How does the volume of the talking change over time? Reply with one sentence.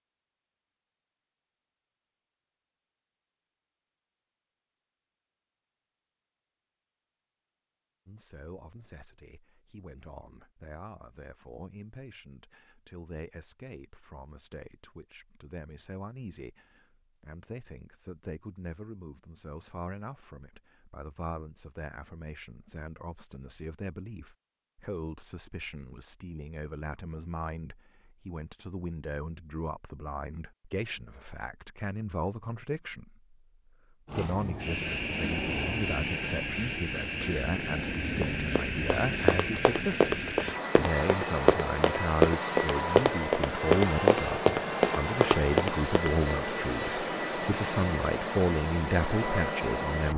The loudness of the talking goes up.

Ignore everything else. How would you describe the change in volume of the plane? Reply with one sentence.
The volume of the plane stays about the same.